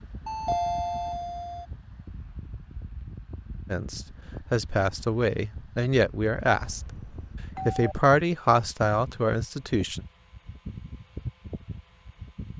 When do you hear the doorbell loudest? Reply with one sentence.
The volume of the doorbell peaks at 1 second.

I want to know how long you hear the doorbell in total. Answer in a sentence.
The doorbell can be heard for 3 seconds in total.